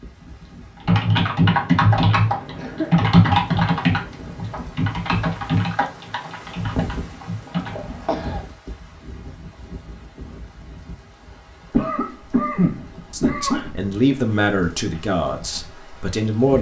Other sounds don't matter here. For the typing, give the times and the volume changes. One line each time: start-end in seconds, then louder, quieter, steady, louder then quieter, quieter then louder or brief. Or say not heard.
0.8-7.8 quieter.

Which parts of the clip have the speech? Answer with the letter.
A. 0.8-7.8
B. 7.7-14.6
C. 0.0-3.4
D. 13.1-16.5
D.